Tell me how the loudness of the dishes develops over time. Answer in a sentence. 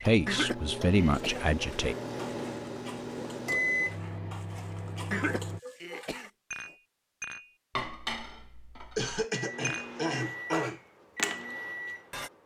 The volume of the dishes goes up.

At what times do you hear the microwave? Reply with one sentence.
You can hear the microwave from 0.0 to 5.6 s and from 9.3 to 12.4 s.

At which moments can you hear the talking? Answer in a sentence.
The talking can be heard from 0.0 to 1.9 s.